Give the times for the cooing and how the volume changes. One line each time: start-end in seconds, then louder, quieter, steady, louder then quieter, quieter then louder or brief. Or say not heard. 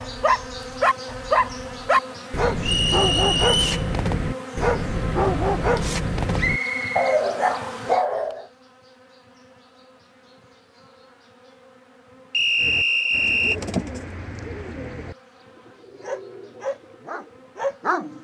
12.6-17.5 quieter.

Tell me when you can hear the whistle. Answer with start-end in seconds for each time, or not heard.
2.6-3.9, 6.3-7.9, 12.3-13.6.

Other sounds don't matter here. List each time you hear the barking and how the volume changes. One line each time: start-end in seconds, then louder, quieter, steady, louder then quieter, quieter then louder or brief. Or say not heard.
0.0-8.4 steady
16.0-18.1 brief.